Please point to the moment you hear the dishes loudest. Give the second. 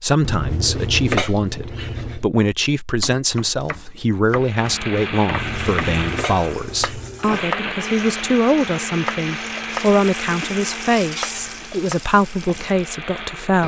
1 s.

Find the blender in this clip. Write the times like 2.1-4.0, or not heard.
4.3-13.6.